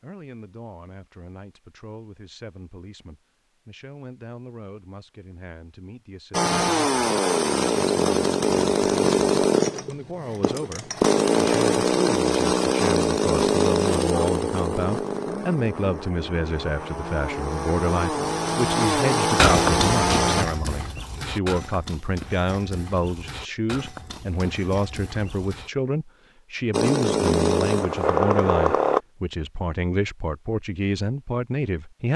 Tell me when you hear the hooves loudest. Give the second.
20 s.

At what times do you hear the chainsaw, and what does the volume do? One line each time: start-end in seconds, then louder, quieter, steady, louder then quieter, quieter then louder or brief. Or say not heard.
6.3-20.4 quieter then louder
26.7-29.0 brief.